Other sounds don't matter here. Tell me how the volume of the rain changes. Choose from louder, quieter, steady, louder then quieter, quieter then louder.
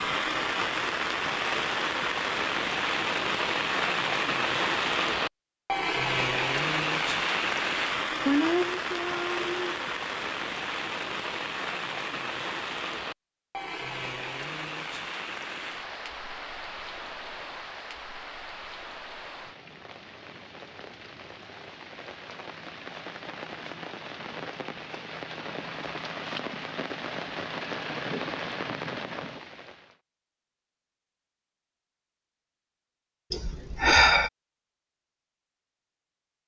quieter then louder.